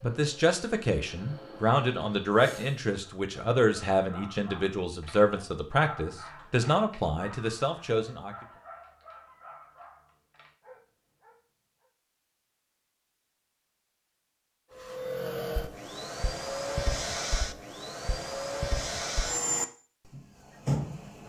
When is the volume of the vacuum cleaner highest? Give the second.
19 s.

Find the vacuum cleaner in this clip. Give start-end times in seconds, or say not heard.
0.0-2.8, 14.8-21.2.